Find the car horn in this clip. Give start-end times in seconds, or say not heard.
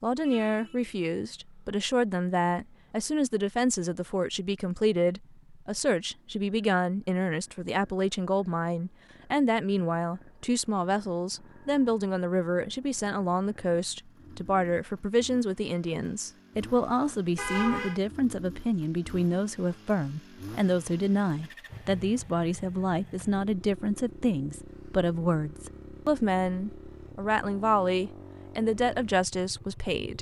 0.2-0.9, 17.4-18.0.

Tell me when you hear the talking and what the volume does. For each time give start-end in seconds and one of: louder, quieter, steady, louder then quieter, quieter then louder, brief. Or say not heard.
0.0-30.1 steady.